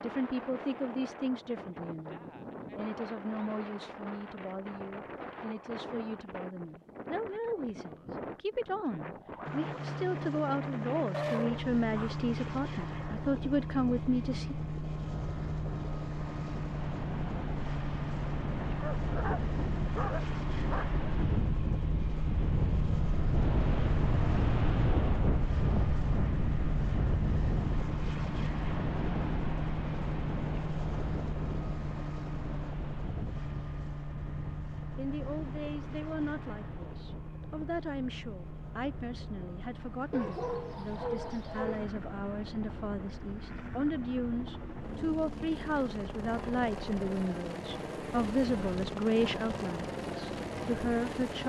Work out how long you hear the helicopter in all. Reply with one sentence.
You can hear the helicopter for 42 seconds altogether.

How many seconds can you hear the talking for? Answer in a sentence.
You can hear the talking for 31 seconds altogether.